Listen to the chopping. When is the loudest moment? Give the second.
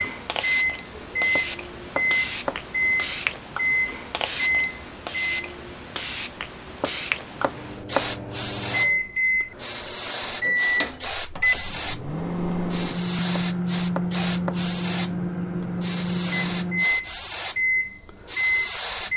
8 s.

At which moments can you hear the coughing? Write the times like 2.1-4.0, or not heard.
not heard.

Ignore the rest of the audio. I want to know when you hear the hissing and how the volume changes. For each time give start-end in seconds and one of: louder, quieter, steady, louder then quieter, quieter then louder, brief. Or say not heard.
0.0-19.1 steady.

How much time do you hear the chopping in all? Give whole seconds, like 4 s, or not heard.
4 s.